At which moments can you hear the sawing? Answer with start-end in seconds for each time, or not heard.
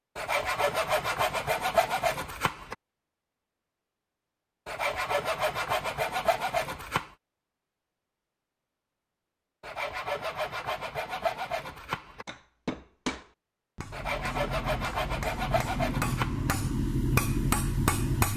0.1-2.8, 4.7-7.2, 9.6-12.2, 13.9-16.5.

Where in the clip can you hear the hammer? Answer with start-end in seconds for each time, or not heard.
12.2-18.3.